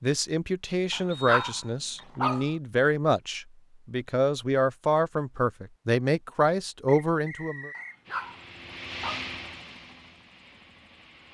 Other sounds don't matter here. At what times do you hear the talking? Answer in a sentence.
You can hear the talking from 0.0 to 7.7 s.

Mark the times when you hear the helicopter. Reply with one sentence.
You can hear the helicopter from 8.0 to 11.2 s.